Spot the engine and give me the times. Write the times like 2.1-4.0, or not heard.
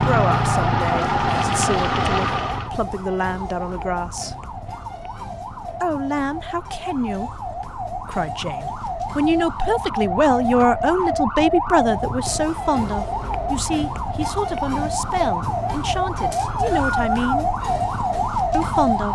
0.0-2.7.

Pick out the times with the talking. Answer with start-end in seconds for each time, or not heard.
0.0-4.3, 5.8-17.4, 18.5-19.1.